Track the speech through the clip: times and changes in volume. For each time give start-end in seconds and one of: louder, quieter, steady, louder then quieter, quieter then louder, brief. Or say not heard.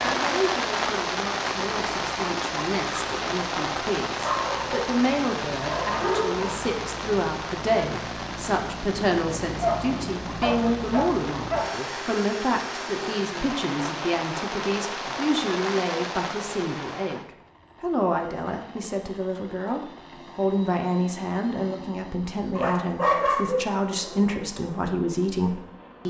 0.0-26.0 steady.